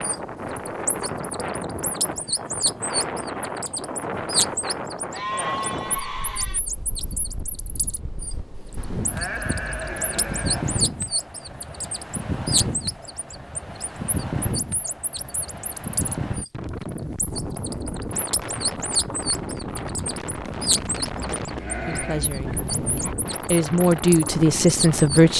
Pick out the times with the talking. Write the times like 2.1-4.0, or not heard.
21.9-25.3.